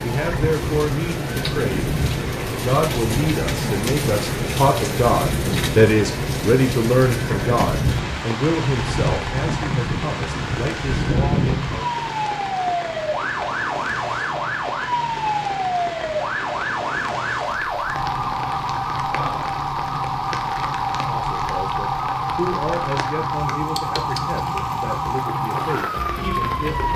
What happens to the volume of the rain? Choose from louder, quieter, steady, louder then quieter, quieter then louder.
quieter.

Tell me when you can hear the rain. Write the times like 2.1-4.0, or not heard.
0.0-26.9.